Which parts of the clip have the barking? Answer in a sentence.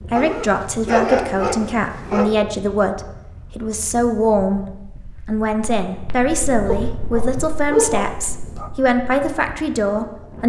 You can hear the barking from 0.1 to 2.4 s and from 6.7 to 8.7 s.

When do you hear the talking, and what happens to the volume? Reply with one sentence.
You can hear the talking from 0.0 to 4.7 s, at a steady volume; and from 5.2 to 10.4 s, at a steady volume.